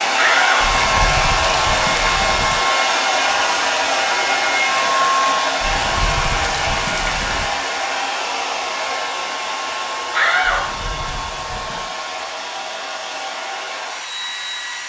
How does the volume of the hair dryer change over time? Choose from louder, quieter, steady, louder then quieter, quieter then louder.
quieter.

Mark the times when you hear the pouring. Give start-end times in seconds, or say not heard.
0.6-2.6, 5.6-7.5, 10.4-11.9.